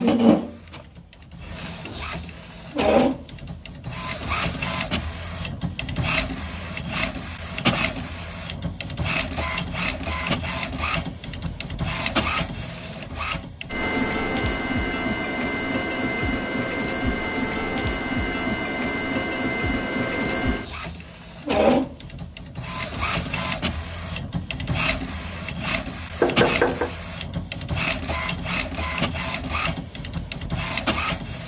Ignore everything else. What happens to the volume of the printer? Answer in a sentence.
The loudness of the printer stays about the same.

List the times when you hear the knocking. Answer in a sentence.
You can hear the knocking from 26.2 to 26.9 s.